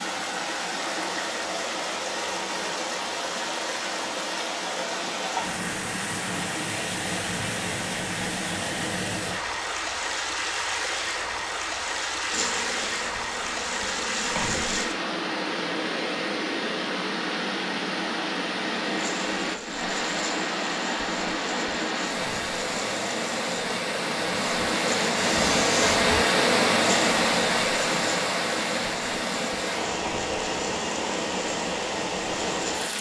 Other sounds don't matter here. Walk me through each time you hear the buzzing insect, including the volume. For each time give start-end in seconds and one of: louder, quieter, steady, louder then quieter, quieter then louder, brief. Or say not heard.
12.3-14.8 brief
18.9-32.9 louder then quieter.